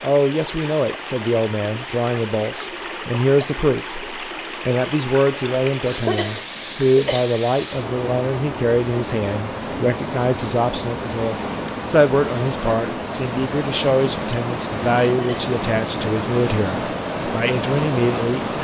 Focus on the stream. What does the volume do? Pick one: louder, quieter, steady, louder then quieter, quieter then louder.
louder.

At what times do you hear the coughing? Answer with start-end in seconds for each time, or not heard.
5.8-7.3, 15.0-15.4.